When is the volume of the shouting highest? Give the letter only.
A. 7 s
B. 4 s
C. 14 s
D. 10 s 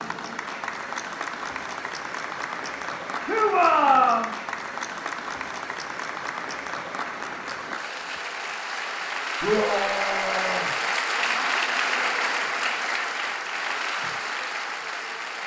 B.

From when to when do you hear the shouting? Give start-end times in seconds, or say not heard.
3.2-4.3, 9.4-10.7.